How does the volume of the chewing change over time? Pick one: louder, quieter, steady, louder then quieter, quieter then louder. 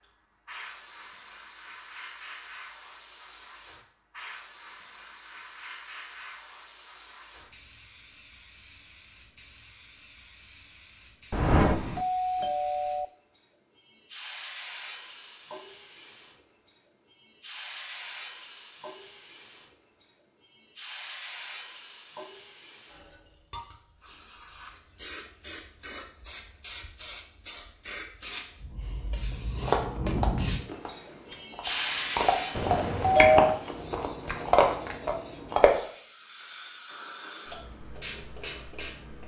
quieter then louder.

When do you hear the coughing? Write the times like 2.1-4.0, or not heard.
not heard.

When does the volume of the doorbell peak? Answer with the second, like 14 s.
33 s.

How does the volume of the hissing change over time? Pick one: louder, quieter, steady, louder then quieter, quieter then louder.
louder.